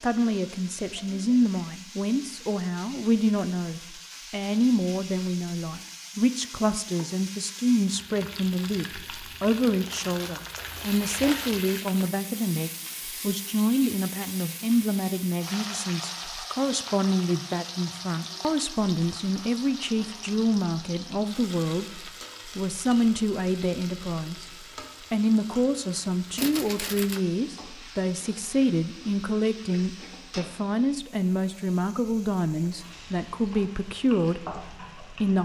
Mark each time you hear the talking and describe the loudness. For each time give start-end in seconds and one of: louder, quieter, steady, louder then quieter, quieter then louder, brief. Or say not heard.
0.0-24.4 steady
25.1-35.3 steady.